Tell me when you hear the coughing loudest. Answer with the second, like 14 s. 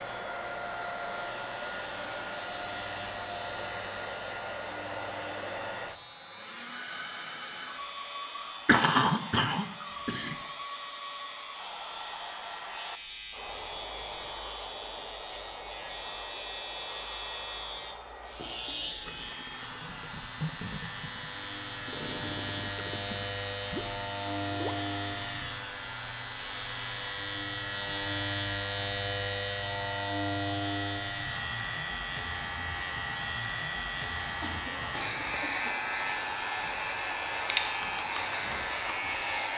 9 s.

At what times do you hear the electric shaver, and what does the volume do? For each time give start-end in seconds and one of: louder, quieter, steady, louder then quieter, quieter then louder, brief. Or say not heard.
0.0-39.5 louder.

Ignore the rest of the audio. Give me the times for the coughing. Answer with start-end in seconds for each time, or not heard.
8.7-10.3, 34.4-35.7.